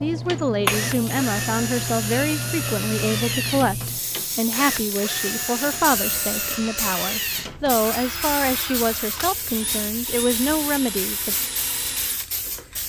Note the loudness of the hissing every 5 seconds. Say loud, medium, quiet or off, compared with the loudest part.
loud, medium, medium.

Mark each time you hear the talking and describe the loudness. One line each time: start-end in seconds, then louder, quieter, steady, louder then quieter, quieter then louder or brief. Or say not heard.
0.0-11.3 steady.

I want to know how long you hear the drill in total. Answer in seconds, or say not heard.
13 s.